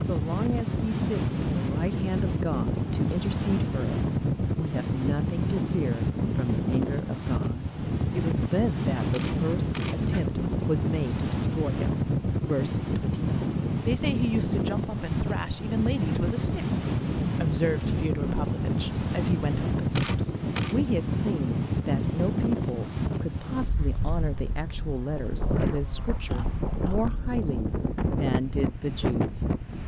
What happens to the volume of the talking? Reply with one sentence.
The loudness of the talking stays about the same.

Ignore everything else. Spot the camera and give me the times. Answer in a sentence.
You can hear the camera from 9.1 to 10.3 s and from 19.9 to 20.8 s.